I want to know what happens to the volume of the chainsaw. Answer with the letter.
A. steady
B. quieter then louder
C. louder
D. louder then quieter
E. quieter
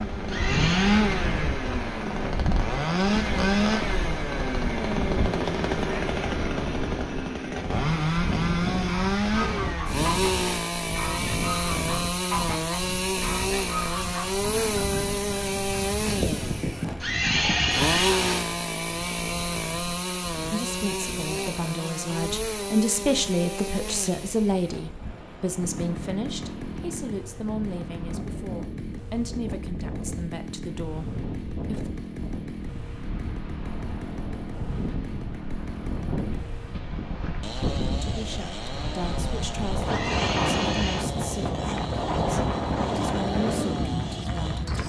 E.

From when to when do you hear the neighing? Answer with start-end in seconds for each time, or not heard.
0.2-1.0, 17.0-18.4, 39.9-41.0.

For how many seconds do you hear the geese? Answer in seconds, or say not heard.
9 s.